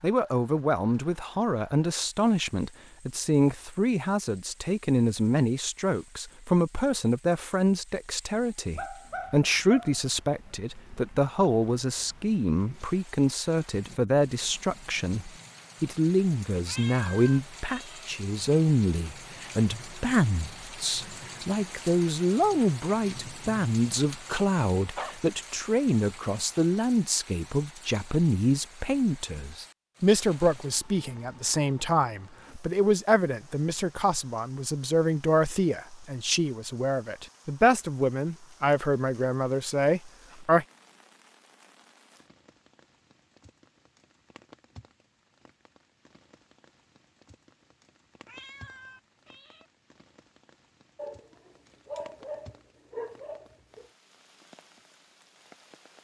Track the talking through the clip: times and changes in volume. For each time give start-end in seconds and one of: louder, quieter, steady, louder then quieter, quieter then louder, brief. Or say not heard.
0.0-40.6 steady.